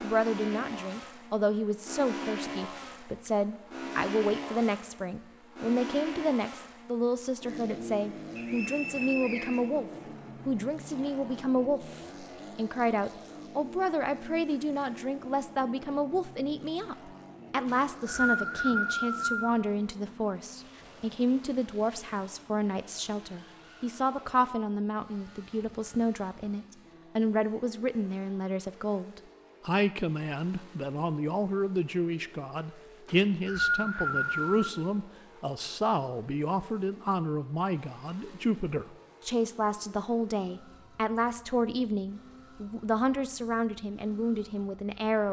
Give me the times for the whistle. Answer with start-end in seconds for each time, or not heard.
8.3-9.7, 17.6-19.6, 33.0-34.7.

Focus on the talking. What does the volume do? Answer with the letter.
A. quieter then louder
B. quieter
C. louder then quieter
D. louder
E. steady
E.